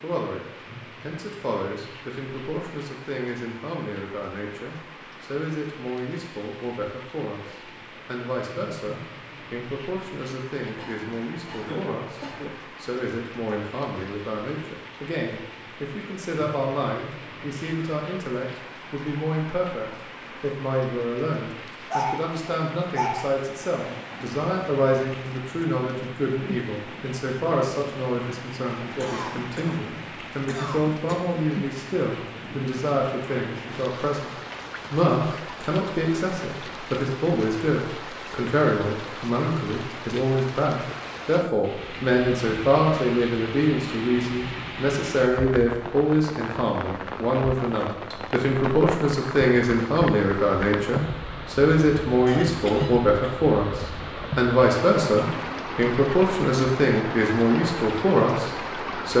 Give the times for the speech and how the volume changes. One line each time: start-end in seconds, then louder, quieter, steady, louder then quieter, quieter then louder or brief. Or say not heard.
0.0-59.1 louder.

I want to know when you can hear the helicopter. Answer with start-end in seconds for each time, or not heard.
not heard.